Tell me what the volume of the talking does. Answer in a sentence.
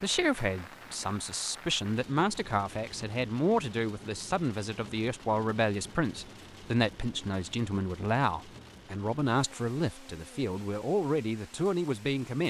The volume of the talking stays about the same.